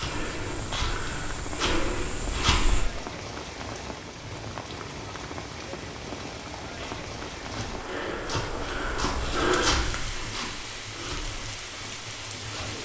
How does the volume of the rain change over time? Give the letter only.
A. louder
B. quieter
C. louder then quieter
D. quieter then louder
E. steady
E.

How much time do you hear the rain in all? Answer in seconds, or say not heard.
13 s.